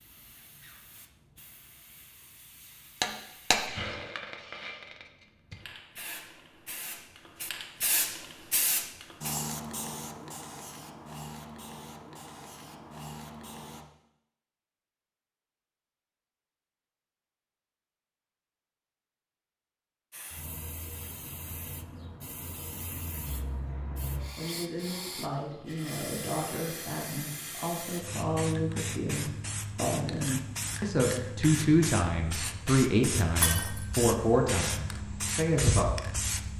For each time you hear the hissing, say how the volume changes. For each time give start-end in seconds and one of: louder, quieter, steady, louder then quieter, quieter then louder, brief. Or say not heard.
0.0-13.8 louder then quieter
20.1-36.5 louder.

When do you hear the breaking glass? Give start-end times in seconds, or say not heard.
3.0-3.6, 33.4-33.9.